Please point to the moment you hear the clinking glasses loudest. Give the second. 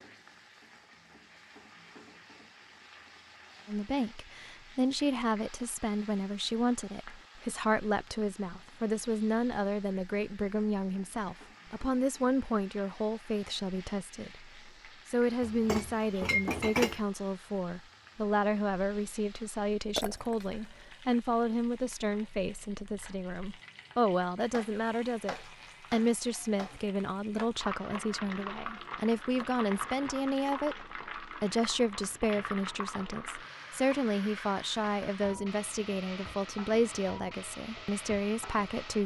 17 s.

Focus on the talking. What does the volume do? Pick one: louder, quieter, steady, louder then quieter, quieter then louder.
steady.